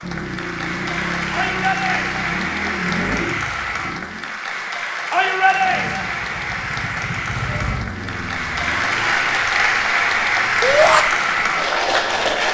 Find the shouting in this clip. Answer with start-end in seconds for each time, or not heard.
1.3-2.3, 5.1-6.1, 10.6-11.1.